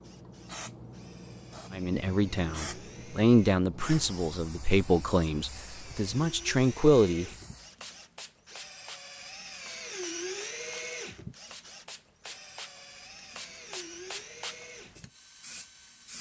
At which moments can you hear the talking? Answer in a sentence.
The talking can be heard from 1.7 to 7.2 s.